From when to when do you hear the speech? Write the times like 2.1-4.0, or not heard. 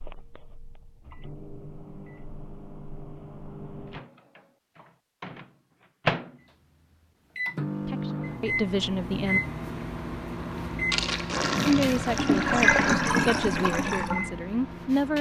7.8-9.4, 11.7-15.1.